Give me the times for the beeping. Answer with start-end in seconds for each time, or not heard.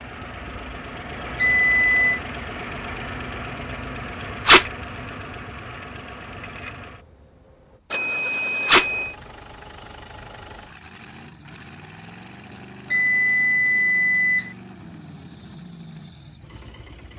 1.4-2.2, 7.9-9.2, 12.9-14.6.